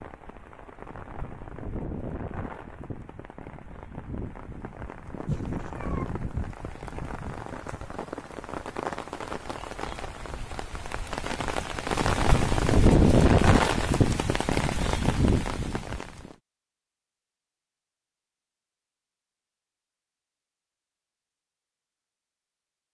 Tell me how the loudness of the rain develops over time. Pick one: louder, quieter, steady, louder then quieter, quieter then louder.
louder.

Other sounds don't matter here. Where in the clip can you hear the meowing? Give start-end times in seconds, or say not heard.
5.2-6.0.